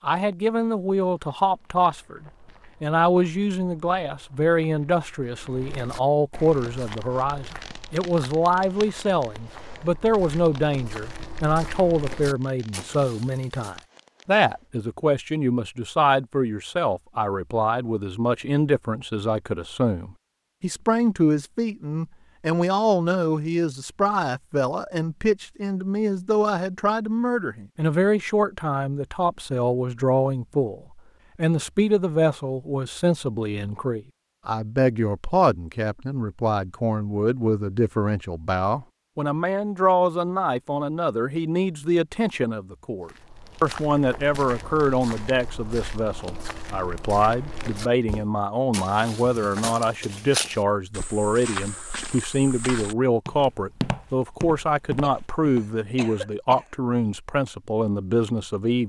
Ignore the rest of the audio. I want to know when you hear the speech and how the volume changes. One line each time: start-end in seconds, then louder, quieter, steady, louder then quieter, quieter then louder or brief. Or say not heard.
0.0-58.8 steady.